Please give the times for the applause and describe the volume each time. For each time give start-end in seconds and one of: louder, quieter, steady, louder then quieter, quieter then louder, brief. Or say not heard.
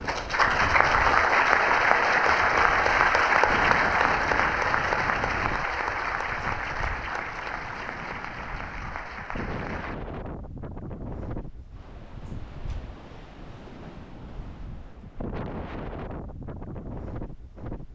0.0-9.9 quieter.